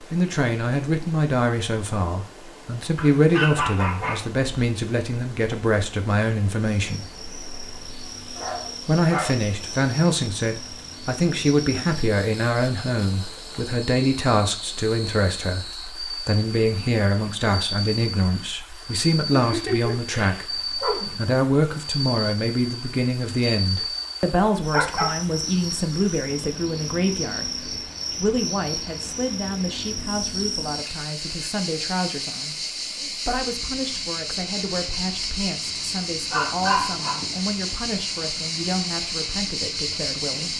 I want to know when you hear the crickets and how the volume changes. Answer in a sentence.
You can hear the crickets from 6.8 to 40.5 s, getting louder.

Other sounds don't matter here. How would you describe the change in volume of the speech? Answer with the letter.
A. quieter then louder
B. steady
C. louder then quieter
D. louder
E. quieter
E.